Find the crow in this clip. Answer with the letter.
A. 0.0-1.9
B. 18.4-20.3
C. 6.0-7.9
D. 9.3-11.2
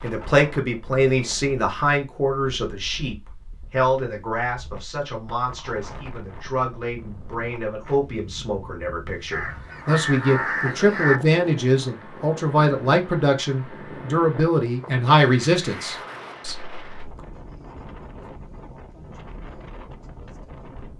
D.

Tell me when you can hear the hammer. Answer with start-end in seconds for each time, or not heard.
not heard.